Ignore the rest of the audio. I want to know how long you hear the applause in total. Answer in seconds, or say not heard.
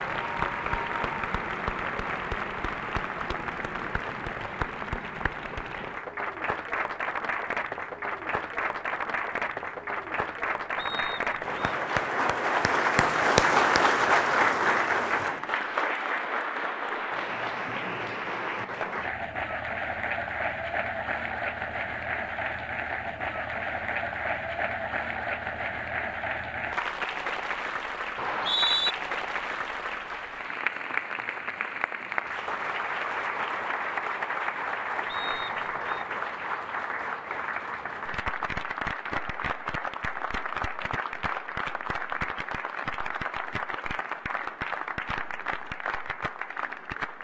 47 s.